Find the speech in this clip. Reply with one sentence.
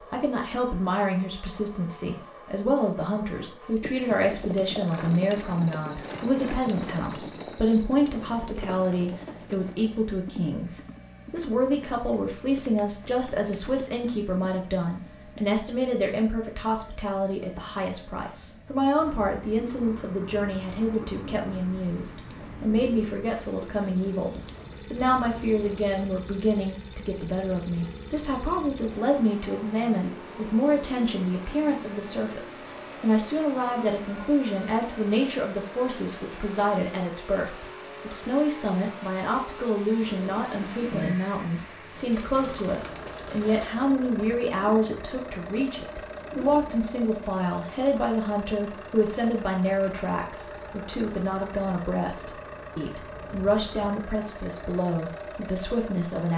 You can hear the speech from 0.0 to 56.3 s.